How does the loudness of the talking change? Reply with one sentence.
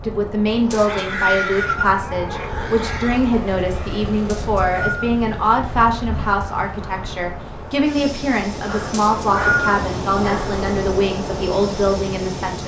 The loudness of the talking stays about the same.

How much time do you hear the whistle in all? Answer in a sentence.
The whistle can be heard for 3 seconds in total.